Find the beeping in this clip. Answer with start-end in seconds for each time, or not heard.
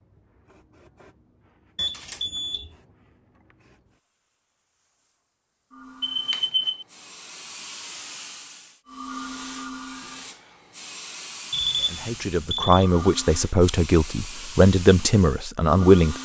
1.8-2.8, 6.0-6.8, 11.5-12.8.